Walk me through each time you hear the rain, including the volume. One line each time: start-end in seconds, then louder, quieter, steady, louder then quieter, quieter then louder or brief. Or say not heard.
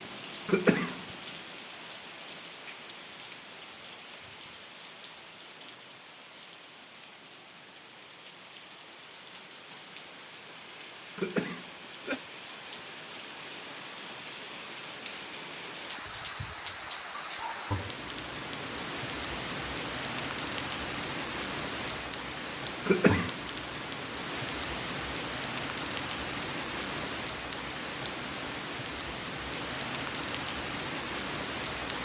0.0-32.0 louder.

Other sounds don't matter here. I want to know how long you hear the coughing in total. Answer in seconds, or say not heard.
2 s.